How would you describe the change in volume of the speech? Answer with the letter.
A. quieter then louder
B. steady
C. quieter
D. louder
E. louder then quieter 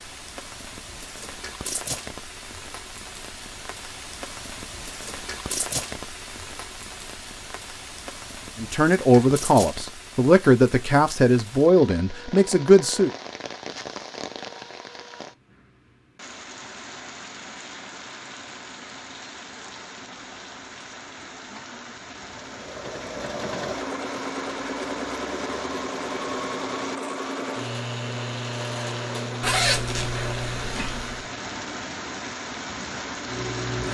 C.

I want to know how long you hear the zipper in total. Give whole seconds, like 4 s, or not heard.
2 s.